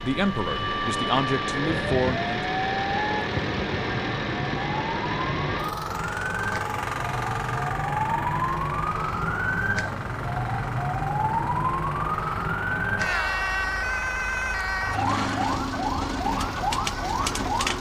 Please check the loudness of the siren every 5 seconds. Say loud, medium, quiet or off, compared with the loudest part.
medium, loud, loud, loud.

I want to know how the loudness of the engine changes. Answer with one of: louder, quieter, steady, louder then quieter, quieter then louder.
quieter.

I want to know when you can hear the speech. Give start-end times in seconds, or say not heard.
0.0-2.4.